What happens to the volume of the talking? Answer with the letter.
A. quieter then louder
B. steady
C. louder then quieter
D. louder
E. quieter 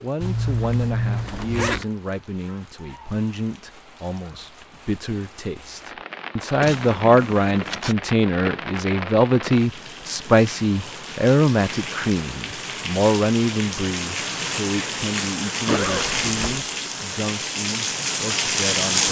C.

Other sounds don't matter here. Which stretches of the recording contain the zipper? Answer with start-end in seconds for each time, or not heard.
0.2-1.9, 6.6-8.0, 15.7-16.6.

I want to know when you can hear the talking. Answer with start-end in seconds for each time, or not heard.
0.0-19.0.